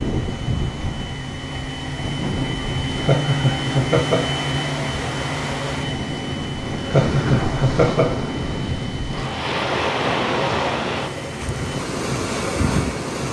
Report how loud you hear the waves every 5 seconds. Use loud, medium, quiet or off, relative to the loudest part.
medium, loud, loud.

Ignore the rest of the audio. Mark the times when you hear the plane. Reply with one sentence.
The plane can be heard from 0.0 to 13.2 s.